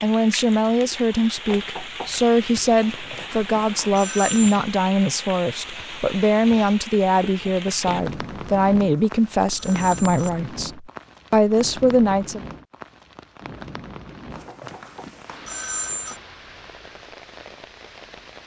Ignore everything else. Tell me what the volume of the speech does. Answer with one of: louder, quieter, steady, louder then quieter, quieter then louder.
steady.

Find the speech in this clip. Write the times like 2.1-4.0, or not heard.
0.0-12.4.